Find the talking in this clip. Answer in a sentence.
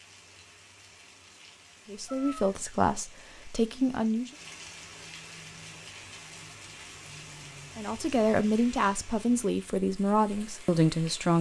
You can hear the talking from 1.9 to 4.3 s and from 7.8 to 11.3 s.